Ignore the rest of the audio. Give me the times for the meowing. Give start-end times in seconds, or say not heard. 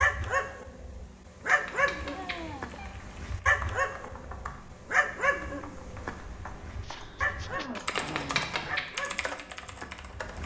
1.4-2.9, 8.0-8.8.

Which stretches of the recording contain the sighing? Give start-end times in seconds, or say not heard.
2.1-2.8, 6.8-8.4.